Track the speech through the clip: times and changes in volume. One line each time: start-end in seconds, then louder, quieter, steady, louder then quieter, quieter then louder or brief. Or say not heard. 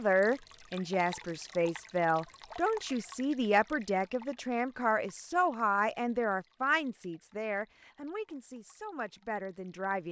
0.0-10.0 quieter.